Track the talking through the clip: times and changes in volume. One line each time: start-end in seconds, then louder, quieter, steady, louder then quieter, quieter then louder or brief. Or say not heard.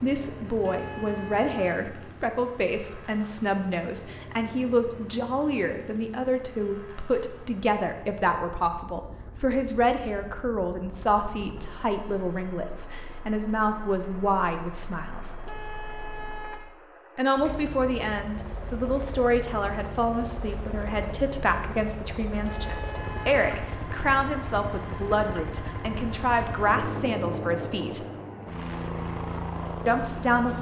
0.0-15.3 steady
17.1-28.1 steady
29.9-30.5 brief.